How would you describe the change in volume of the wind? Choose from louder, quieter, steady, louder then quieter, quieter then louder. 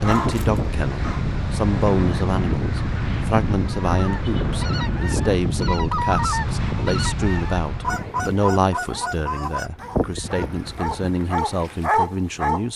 quieter.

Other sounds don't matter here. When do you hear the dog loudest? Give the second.
12 s.